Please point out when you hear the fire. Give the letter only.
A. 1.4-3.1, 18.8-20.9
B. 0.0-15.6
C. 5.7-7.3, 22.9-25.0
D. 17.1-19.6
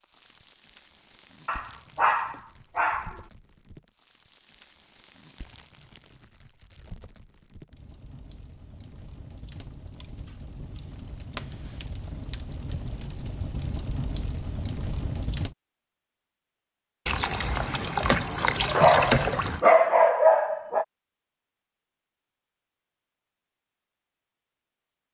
B.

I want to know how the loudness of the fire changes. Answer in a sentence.
The loudness of the fire goes up.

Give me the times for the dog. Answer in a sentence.
You can hear the dog from 1.4 to 3.1 s and from 18.8 to 20.9 s.